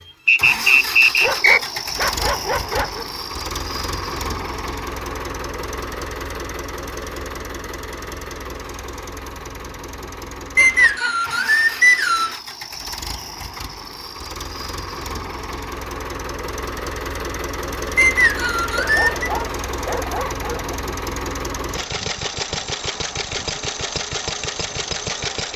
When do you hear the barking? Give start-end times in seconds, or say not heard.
1.2-3.0, 18.8-20.8.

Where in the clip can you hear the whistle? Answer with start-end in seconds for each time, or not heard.
0.2-1.6, 10.6-12.3, 17.9-19.3.